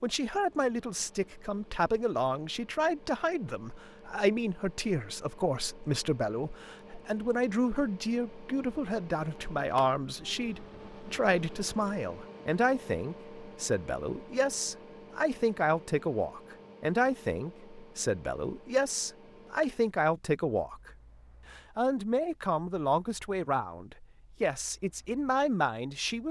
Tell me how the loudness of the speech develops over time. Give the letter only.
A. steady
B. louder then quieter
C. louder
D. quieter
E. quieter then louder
A.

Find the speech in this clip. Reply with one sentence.
You can hear the speech from 0.0 to 20.9 s and from 21.5 to 26.2 s.